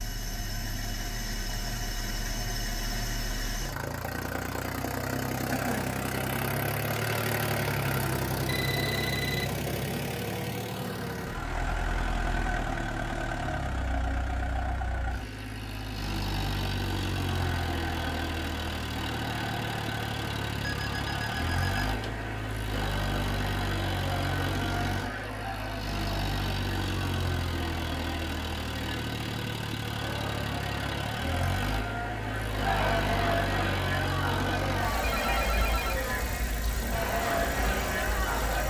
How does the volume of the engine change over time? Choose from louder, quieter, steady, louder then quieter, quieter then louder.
steady.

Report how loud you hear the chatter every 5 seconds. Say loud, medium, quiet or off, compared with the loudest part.
off, off, off, medium, medium, medium, loud, loud.